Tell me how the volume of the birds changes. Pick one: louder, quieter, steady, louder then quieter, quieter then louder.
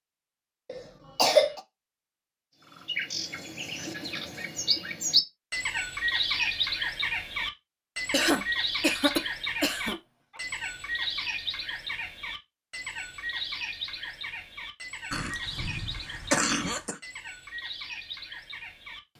quieter.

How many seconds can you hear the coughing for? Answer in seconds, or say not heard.
5 s.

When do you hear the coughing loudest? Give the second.
1 s.